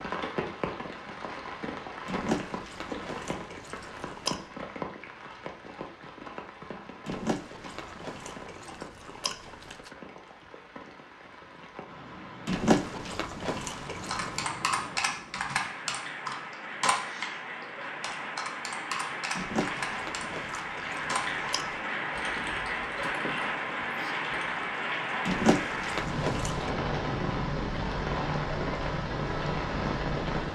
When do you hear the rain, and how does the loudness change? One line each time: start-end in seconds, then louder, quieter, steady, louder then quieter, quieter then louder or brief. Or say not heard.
0.0-30.5 quieter then louder.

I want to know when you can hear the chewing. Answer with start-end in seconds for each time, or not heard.
2.0-4.4, 7.0-9.9, 12.4-14.4, 19.4-21.9, 25.2-26.8.